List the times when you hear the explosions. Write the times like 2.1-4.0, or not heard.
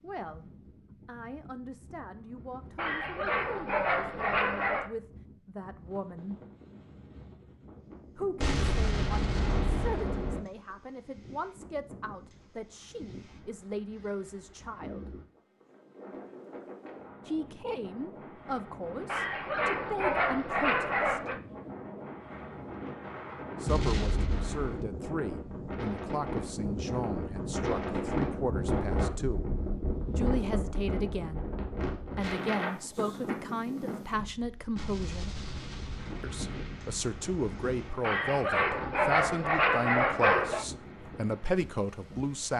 8.4-10.4, 23.6-24.9, 34.8-38.0.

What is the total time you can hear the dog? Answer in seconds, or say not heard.
7 s.